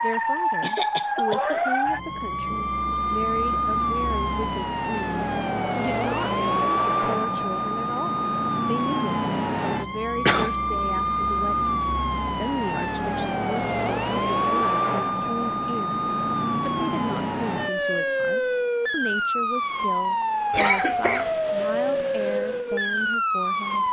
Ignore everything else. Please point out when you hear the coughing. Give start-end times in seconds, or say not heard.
0.6-1.6, 9.8-10.6, 20.5-21.3.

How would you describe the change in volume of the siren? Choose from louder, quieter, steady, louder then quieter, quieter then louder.
steady.